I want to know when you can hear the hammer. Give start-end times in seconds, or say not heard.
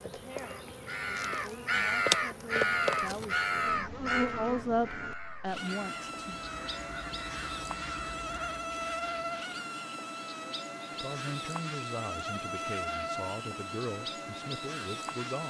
not heard.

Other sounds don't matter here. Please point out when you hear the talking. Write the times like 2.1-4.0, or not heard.
0.1-6.3, 11.0-15.4.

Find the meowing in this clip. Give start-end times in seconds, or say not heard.
not heard.